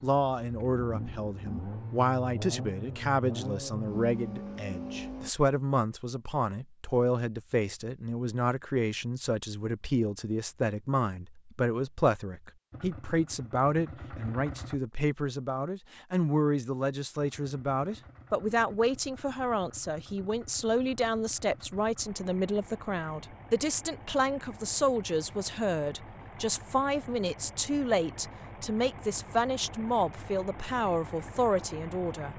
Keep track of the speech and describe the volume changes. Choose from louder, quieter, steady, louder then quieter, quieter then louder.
steady.